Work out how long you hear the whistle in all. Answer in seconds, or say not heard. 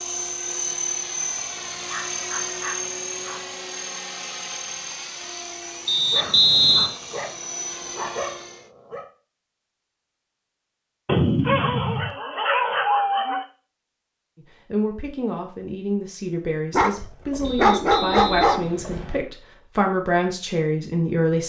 3 s.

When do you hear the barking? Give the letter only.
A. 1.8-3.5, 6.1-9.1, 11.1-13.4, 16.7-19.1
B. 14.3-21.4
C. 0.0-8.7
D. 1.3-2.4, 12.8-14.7
A.